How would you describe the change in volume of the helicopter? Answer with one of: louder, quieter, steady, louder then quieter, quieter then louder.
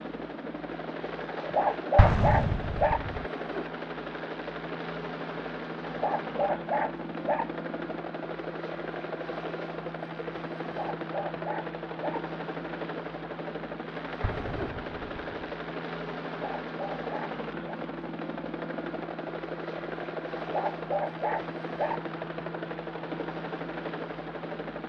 steady.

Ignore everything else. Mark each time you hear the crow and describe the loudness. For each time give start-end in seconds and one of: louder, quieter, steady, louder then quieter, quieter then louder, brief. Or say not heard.
not heard.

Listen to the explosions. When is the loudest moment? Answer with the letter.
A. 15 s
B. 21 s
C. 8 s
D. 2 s
D.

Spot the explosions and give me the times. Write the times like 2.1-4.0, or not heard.
1.9-3.2, 14.2-15.3.